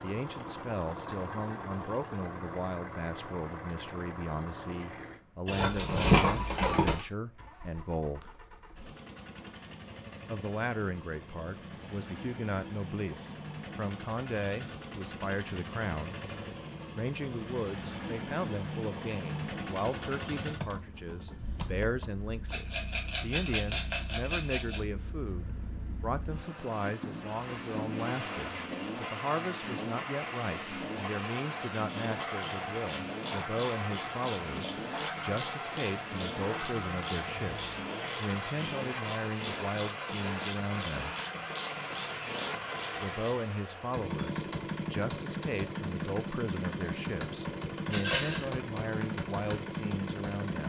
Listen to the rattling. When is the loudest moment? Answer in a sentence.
The loudest moment of the rattling is at 6 seconds.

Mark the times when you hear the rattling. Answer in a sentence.
The rattling can be heard from 5.5 to 7.0 s, from 22.5 to 24.8 s and from 47.9 to 48.5 s.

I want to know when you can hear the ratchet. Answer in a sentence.
You can hear the ratchet from 31.9 to 43.4 s.